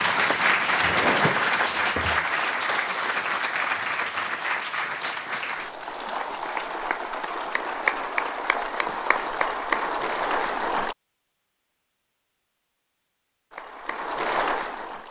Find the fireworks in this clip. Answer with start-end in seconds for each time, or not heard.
0.0-2.1.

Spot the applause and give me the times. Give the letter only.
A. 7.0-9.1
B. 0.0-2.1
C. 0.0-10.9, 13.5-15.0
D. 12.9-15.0
C.